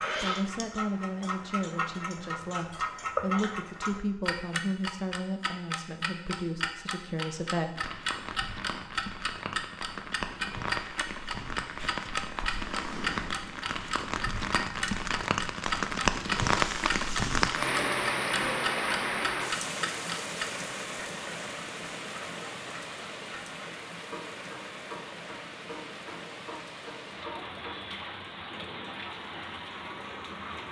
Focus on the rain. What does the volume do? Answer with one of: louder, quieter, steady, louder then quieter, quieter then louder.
louder then quieter.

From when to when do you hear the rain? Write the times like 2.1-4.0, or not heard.
7.8-30.6.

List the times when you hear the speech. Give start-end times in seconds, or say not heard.
0.0-8.0.